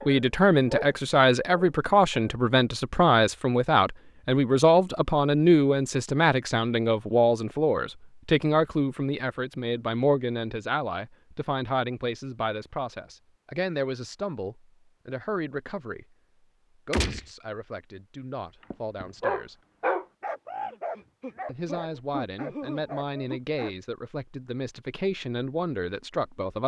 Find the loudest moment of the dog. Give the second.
20 s.